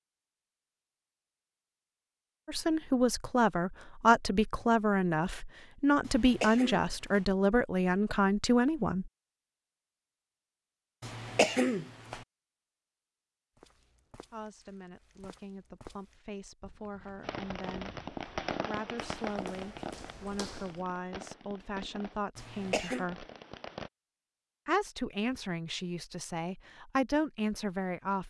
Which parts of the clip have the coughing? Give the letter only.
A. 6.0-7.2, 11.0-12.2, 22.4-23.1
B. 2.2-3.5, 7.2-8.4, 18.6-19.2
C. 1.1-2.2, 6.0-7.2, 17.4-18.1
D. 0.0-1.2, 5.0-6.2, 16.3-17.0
A.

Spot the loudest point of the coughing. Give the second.
12 s.